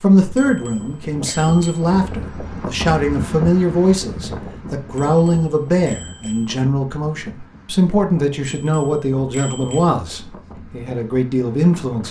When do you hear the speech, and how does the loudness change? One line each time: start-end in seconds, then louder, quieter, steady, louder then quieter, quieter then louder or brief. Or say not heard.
0.0-12.0 steady.